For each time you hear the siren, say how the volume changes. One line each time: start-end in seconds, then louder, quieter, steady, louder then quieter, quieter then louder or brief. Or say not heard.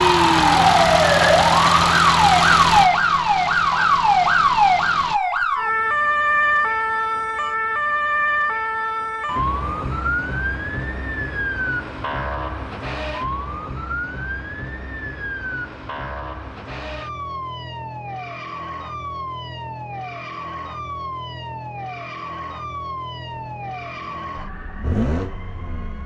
0.0-26.0 quieter.